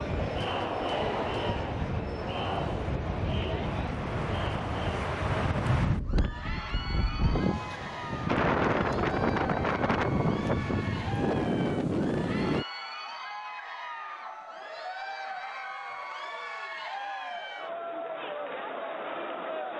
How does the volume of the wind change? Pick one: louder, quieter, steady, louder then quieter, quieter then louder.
louder.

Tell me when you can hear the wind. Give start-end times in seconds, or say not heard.
0.0-12.7.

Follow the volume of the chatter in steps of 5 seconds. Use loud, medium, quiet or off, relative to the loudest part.
loud, medium, medium, loud.